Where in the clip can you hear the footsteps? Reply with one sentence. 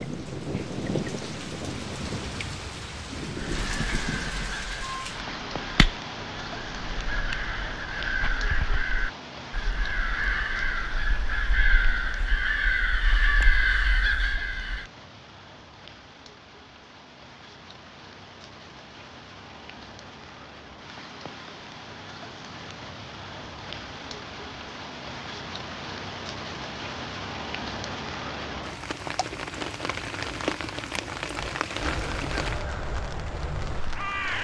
You can't hear the footsteps here.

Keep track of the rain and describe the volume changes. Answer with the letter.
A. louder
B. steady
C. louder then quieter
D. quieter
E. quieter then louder
E.